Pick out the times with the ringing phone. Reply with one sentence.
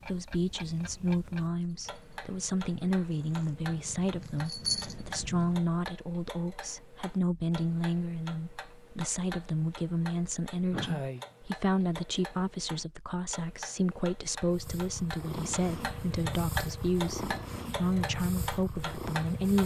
You can't hear the ringing phone here.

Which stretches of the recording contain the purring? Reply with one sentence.
You can hear the purring from 0.0 to 5.7 s and from 14.4 to 19.6 s.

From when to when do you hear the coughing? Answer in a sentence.
The coughing can be heard from 10.7 to 11.2 s.